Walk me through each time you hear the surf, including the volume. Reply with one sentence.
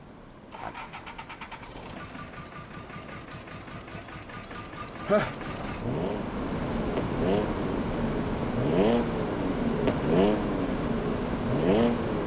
You can hear the surf from 0.0 to 12.2 s, getting louder.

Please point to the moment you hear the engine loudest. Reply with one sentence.
The volume of the engine peaks at 10 seconds.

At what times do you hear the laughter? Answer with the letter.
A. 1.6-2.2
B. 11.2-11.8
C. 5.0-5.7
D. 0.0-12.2
C.